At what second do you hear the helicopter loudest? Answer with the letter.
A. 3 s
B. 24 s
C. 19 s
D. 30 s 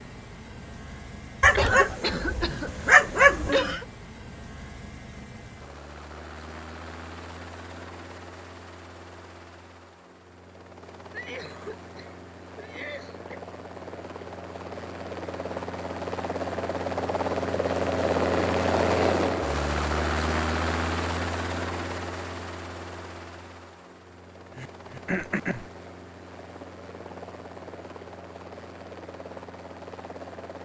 C.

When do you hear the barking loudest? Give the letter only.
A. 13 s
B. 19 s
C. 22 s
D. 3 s
D.